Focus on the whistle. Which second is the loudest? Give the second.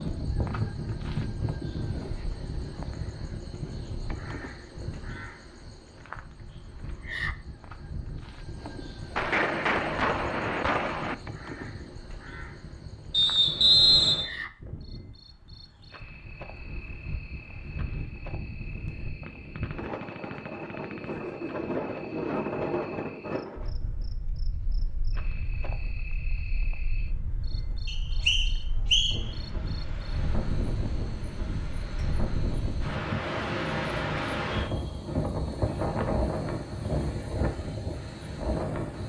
14 s.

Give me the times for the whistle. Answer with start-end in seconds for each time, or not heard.
13.1-14.2, 27.9-29.3.